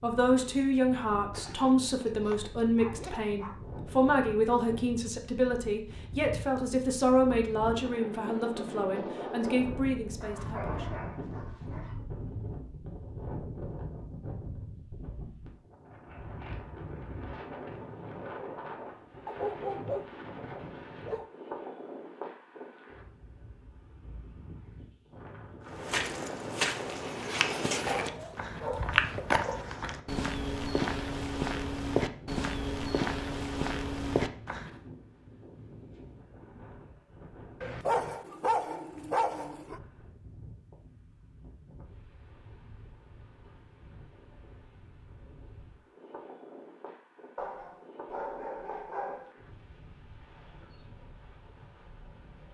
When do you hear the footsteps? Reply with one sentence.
You can hear the footsteps from 25.6 to 34.8 s.